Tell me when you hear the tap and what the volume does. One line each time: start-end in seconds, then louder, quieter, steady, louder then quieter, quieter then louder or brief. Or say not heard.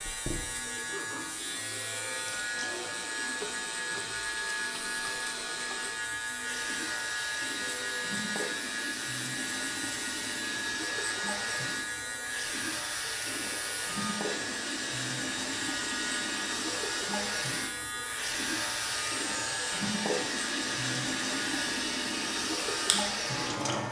0.0-23.8 louder.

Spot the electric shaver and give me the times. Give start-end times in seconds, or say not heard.
0.0-23.8.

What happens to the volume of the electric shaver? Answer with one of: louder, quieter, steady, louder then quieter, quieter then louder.
steady.